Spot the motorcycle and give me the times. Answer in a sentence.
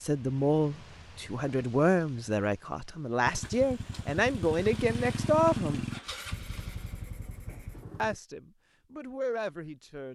You can hear the motorcycle from 3.2 to 8.2 s.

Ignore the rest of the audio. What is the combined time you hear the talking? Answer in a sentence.
The talking can be heard for 8 seconds in total.